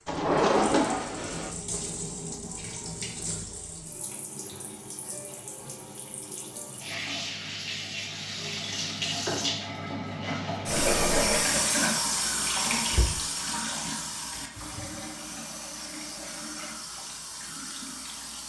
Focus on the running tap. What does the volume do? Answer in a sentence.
The loudness of the running tap goes up, then down.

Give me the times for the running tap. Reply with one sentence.
The running tap can be heard from 0.0 to 18.4 s.